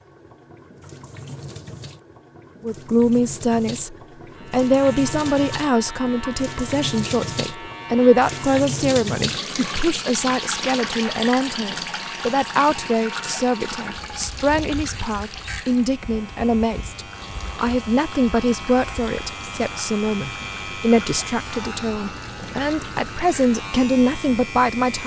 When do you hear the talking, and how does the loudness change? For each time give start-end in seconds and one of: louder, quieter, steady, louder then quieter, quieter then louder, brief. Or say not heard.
2.6-25.0 steady.